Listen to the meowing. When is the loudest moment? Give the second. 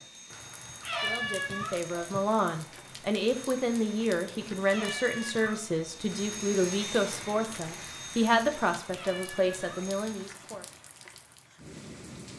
1 s.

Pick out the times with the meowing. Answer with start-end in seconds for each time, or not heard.
0.7-2.0, 4.7-5.8, 8.9-9.9.